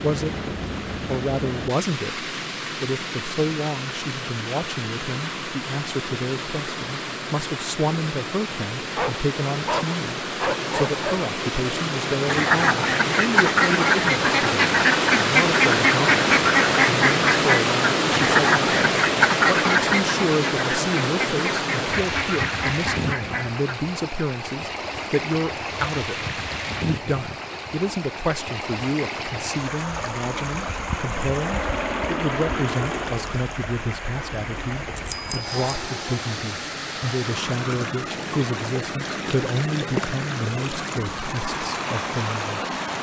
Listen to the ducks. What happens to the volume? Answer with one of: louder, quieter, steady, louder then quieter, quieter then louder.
quieter.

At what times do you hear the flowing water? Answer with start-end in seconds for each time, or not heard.
0.0-42.9.